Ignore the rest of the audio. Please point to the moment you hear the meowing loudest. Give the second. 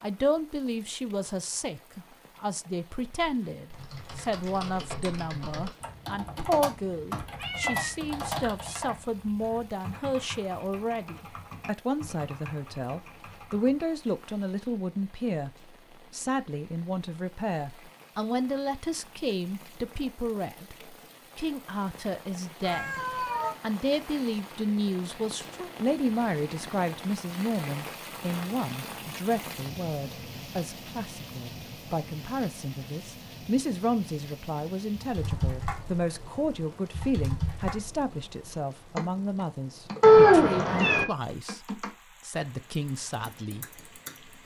40 s.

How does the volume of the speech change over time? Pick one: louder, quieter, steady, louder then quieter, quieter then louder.
steady.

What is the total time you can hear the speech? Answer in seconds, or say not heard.
43 s.